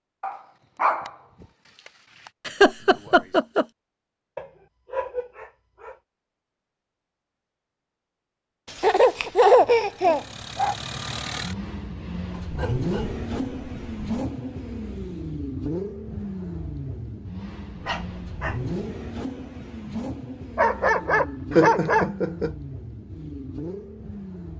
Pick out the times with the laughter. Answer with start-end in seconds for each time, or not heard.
2.5-3.6, 8.8-10.2, 21.5-22.5.